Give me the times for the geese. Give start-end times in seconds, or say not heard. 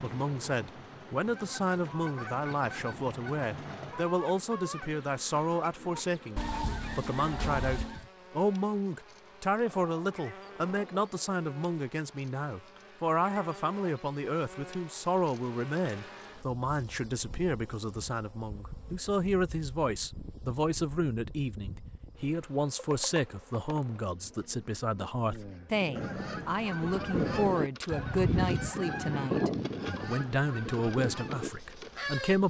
1.3-8.1, 25.7-32.4.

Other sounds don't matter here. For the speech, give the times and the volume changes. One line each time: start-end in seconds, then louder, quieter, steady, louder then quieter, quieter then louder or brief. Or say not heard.
0.0-32.4 steady.